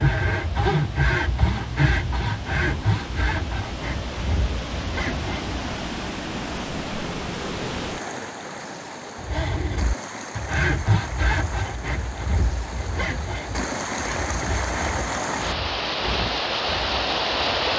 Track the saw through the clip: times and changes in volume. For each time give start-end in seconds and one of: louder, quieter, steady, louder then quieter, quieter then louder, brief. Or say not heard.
0.0-5.5 quieter
9.2-17.7 quieter.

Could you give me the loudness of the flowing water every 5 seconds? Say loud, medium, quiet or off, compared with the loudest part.
medium, medium, medium, loud.